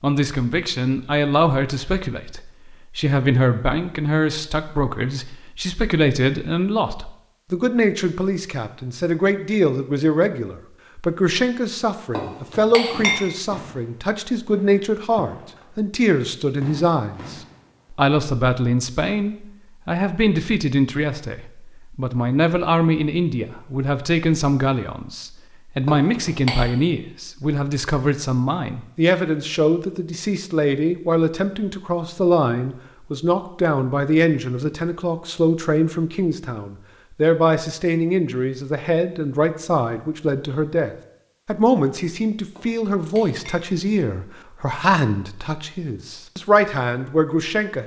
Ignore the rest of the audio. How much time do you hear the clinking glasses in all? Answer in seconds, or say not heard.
3 s.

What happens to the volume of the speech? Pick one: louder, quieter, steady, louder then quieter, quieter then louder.
steady.